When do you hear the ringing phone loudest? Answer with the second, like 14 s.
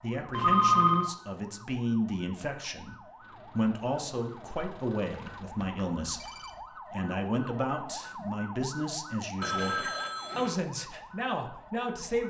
1 s.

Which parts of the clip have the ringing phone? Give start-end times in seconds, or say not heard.
0.3-1.1, 5.1-6.6, 9.4-10.6.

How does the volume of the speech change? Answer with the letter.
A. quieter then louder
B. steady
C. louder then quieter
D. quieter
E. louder
B.